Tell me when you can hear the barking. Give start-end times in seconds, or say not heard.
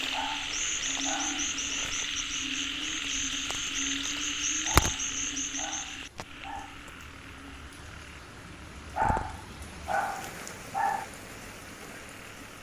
0.1-1.5, 4.7-6.8, 8.9-11.1.